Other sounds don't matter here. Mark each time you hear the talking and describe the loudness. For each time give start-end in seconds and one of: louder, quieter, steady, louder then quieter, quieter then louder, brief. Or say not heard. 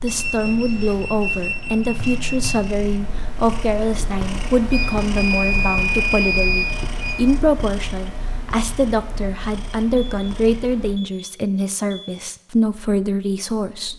0.0-13.9 steady.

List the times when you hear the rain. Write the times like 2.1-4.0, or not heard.
not heard.